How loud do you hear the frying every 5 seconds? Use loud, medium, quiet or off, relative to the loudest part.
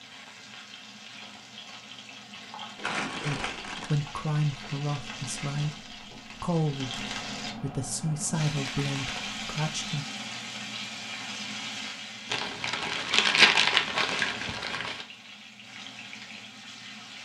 medium, loud, loud, medium.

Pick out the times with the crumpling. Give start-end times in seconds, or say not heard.
2.8-4.0, 8.4-9.3, 12.3-15.1.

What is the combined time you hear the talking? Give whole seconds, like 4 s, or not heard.
7 s.